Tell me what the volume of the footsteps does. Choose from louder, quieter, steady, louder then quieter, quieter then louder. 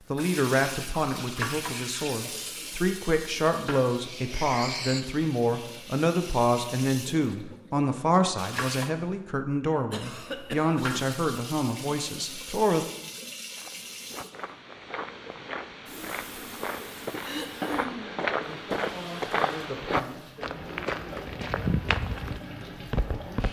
louder.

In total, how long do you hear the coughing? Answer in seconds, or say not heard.
3 s.